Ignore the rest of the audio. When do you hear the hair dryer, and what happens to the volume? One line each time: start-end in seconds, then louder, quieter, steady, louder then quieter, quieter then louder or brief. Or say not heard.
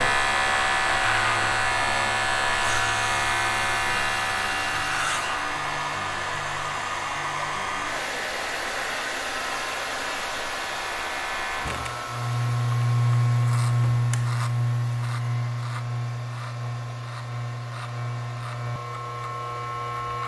0.0-20.2 quieter.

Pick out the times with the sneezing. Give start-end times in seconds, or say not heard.
not heard.